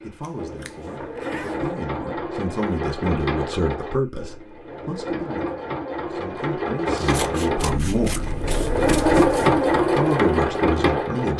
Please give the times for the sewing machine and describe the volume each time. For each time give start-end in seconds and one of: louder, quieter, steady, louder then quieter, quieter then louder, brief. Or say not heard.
0.0-11.3 louder.